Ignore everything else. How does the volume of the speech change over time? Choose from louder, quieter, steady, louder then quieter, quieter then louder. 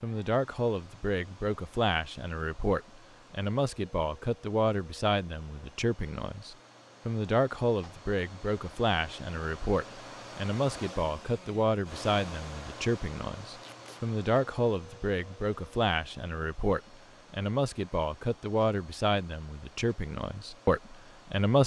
steady.